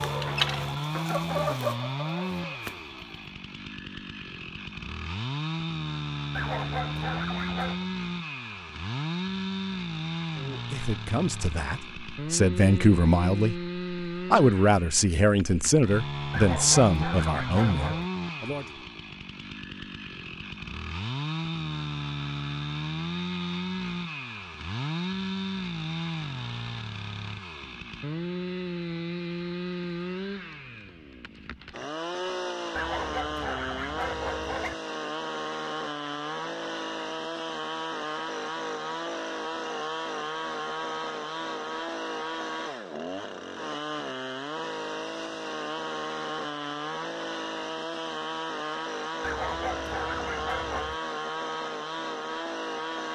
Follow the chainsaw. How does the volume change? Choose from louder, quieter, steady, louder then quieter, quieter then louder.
steady.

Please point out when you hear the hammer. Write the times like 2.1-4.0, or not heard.
not heard.